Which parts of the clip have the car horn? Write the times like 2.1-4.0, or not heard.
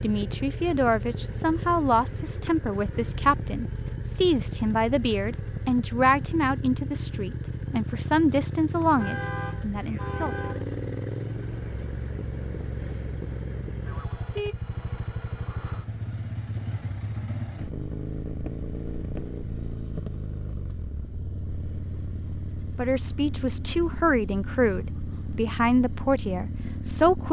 8.8-10.7.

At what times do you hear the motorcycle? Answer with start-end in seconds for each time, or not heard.
0.0-27.2.